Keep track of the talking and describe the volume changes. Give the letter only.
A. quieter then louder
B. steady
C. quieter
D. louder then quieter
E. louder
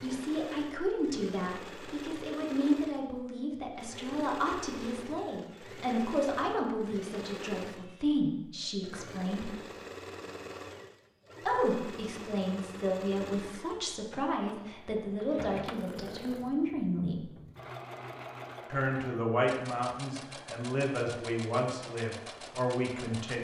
B.